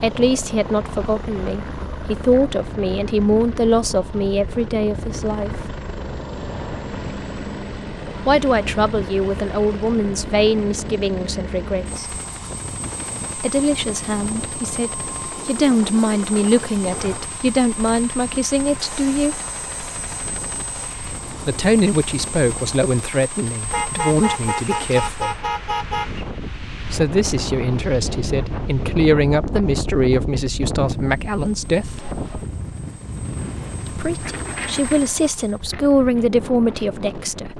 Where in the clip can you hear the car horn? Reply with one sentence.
You can hear the car horn from 23.7 to 26.2 s.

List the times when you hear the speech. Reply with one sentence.
You can hear the speech from 0.0 to 5.8 s, from 8.2 to 12.1 s, from 13.3 to 19.4 s, from 21.4 to 25.4 s, from 26.9 to 32.1 s and from 33.9 to 37.5 s.